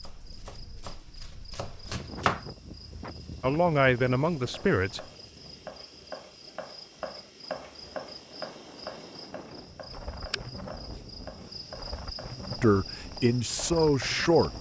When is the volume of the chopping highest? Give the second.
2 s.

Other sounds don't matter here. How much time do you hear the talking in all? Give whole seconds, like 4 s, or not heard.
4 s.